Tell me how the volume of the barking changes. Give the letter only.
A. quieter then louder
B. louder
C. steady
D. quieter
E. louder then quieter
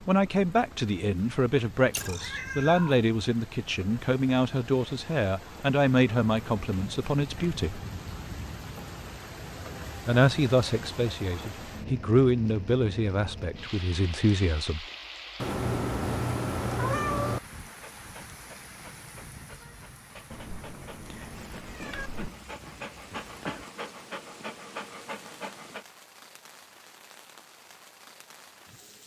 B.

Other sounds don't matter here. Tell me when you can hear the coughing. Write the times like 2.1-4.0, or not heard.
21.8-23.6.